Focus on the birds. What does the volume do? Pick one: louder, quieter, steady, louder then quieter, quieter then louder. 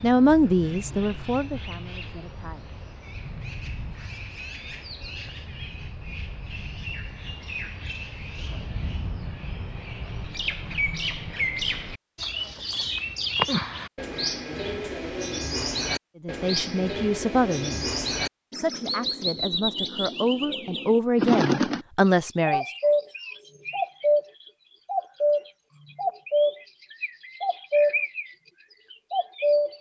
louder.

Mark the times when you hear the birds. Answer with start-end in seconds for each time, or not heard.
0.0-29.7.